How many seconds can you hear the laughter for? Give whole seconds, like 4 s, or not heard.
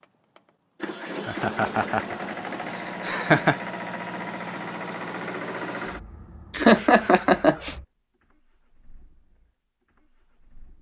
3 s.